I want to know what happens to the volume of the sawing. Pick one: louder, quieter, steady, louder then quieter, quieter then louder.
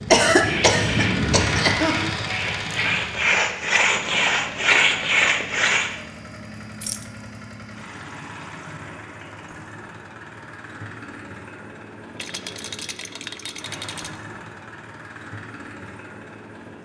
louder.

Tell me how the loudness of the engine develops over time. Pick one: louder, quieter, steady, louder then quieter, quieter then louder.
quieter.